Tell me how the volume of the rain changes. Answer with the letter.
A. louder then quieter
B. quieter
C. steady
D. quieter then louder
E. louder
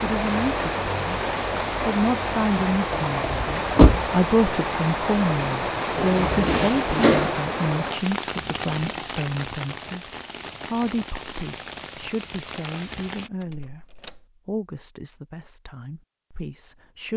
B.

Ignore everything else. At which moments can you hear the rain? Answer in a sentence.
You can hear the rain from 0.0 to 13.3 s.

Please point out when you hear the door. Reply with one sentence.
You can hear the door from 2.7 to 4.1 s, from 6.0 to 7.3 s and from 13.4 to 14.2 s.